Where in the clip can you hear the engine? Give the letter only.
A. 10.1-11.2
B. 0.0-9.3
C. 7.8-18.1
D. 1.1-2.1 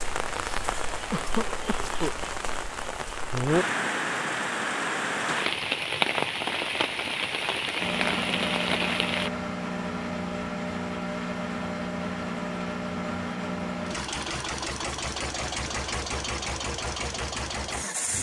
C.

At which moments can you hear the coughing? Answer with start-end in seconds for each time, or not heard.
1.1-2.1.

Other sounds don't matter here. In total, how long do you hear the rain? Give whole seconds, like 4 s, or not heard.
9 s.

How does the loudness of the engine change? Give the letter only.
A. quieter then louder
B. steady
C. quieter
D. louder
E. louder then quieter
B.